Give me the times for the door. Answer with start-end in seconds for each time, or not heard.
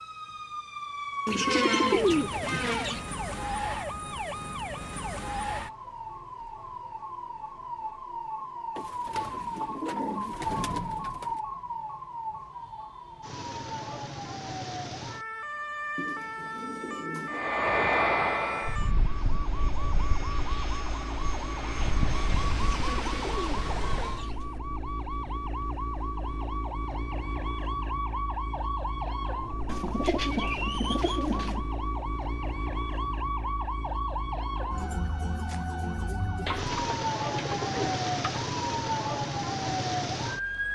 not heard.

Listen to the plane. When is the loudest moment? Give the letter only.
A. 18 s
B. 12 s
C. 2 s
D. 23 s
A.